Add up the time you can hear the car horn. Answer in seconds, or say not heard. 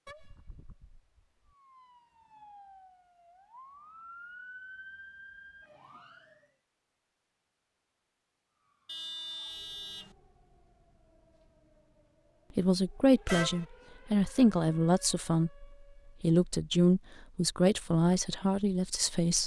3 s.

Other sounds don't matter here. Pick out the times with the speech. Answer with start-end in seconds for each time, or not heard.
12.6-19.4.